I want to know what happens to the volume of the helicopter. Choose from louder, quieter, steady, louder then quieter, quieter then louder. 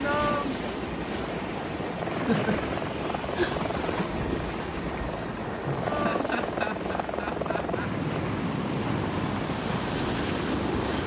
louder.